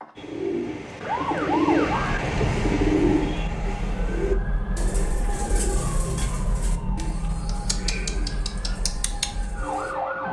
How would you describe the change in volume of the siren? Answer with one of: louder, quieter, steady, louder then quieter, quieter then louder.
quieter.